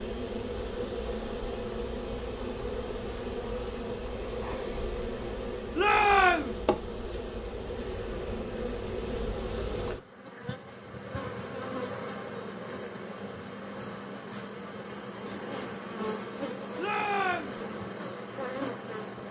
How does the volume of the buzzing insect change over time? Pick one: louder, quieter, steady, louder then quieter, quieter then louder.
steady.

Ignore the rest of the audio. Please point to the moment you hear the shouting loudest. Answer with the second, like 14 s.
6 s.